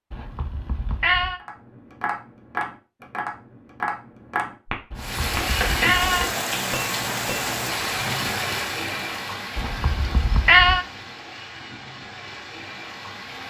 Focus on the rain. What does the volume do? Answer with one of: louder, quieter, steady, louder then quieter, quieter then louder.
quieter.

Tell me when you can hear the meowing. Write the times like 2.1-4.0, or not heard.
0.1-1.4, 4.9-6.3, 9.6-10.8.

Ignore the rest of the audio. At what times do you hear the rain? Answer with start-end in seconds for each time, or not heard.
5.0-13.4.